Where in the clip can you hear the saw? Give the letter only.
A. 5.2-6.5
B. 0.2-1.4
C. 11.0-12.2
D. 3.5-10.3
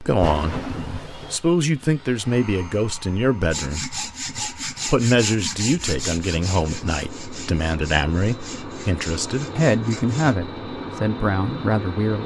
D.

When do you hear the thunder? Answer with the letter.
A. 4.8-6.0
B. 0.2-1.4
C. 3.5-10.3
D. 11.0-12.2
B.